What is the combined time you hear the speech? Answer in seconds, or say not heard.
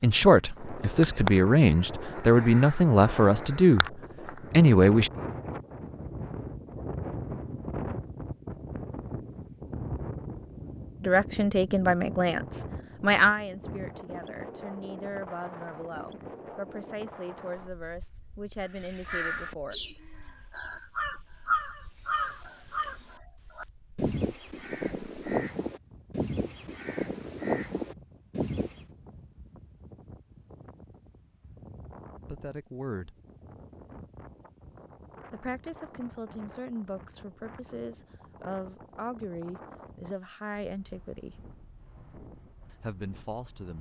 21 s.